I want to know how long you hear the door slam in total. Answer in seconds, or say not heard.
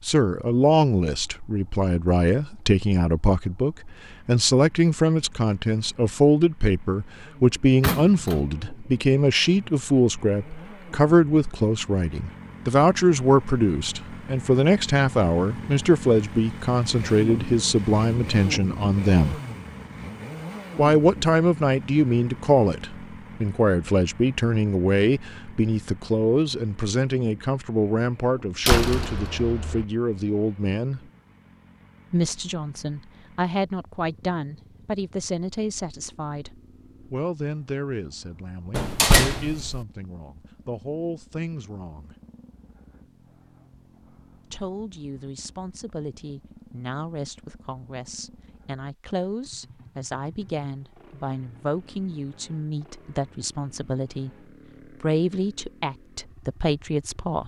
3 s.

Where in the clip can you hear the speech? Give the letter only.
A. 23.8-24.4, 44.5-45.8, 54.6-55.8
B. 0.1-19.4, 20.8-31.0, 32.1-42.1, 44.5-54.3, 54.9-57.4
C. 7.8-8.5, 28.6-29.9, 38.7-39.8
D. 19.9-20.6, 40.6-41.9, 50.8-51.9
B.